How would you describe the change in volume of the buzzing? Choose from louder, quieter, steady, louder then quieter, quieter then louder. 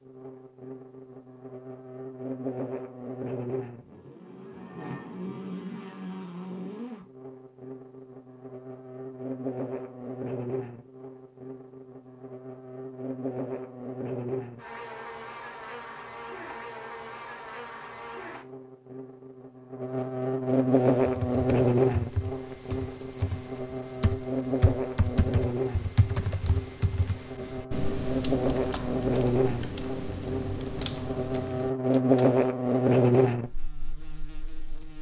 louder.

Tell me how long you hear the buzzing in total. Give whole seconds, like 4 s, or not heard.
35 s.